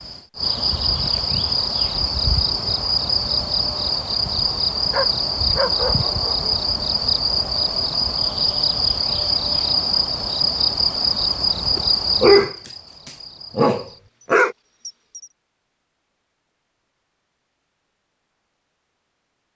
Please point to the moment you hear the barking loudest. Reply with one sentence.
The loudest moment of the barking is at 12 seconds.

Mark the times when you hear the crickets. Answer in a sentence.
You can hear the crickets from 0.0 to 15.3 s.